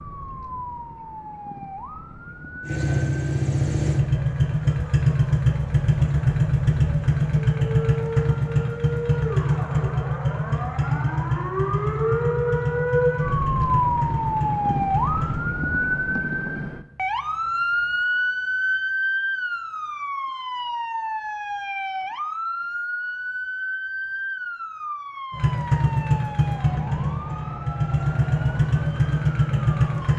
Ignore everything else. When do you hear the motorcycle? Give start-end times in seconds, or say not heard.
2.6-15.4, 25.3-30.1.